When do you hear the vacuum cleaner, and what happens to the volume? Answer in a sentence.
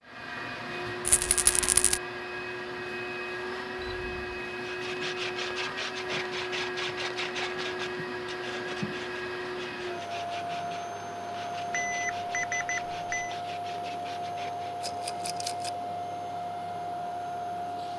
The vacuum cleaner can be heard from 0.0 to 17.9 s, at a steady volume.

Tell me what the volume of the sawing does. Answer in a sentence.
The volume of the sawing goes down.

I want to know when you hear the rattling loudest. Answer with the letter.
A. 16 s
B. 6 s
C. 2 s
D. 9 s
C.